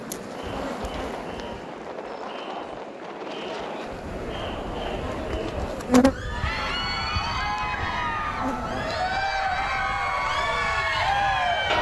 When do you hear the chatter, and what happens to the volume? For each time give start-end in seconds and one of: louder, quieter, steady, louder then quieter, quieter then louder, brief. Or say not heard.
0.1-11.7 louder.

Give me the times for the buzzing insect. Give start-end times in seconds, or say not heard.
0.0-8.9.